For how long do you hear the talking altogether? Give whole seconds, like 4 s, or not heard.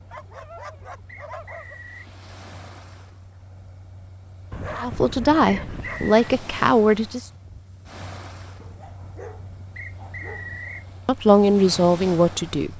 4 s.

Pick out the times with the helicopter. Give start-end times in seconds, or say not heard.
not heard.